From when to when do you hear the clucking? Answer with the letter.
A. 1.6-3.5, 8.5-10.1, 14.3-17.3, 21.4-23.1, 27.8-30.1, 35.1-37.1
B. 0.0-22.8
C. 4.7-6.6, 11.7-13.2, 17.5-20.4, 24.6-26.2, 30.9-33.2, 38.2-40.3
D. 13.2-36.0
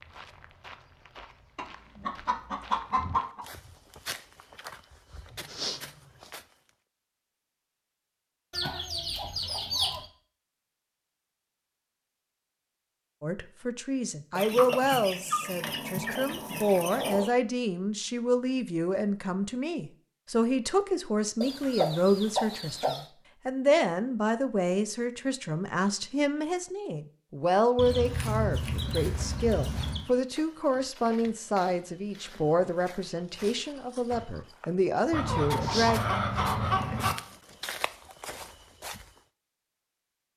A.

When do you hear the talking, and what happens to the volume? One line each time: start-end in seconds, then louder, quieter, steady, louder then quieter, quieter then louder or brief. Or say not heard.
13.2-36.0 steady.